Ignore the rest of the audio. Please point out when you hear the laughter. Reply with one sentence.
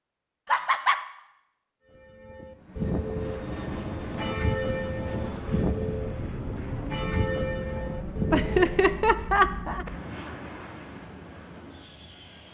The laughter can be heard from 0.5 to 1.0 s and from 8.3 to 9.8 s.